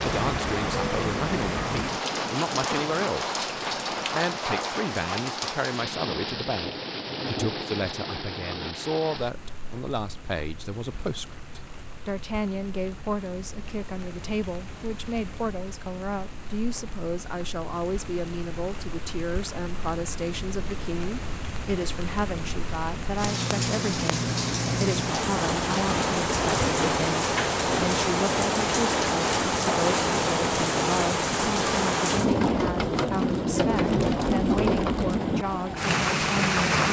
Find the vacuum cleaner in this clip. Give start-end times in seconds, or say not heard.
not heard.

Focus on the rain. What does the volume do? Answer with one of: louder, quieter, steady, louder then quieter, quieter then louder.
quieter then louder.